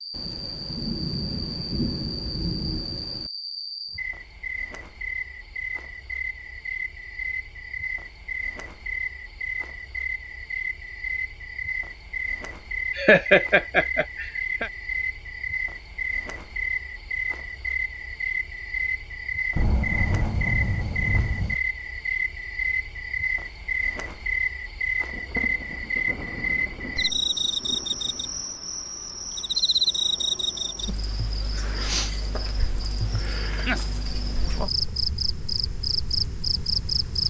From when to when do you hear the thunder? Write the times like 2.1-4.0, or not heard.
0.1-3.3, 19.6-21.6, 25.1-28.2.